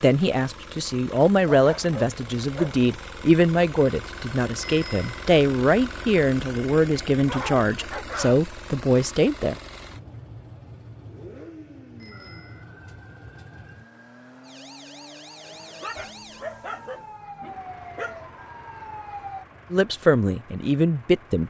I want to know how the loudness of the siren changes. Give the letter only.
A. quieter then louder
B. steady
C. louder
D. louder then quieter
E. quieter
C.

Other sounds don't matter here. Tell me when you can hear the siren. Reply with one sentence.
You can hear the siren from 12.1 to 19.4 s.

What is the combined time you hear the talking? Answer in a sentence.
You can hear the talking for 11 seconds altogether.